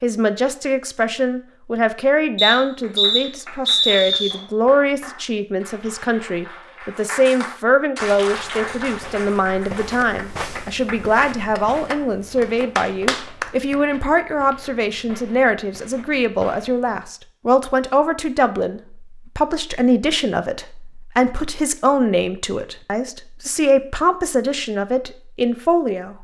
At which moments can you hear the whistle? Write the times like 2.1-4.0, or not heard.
2.4-4.3.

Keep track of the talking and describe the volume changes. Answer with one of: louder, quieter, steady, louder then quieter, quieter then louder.
steady.